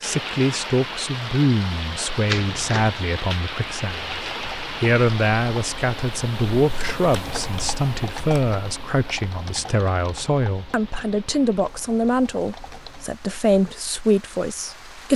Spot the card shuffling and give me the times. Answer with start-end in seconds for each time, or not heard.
2.2-3.0.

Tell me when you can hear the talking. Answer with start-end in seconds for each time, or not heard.
0.0-4.1, 4.8-15.1.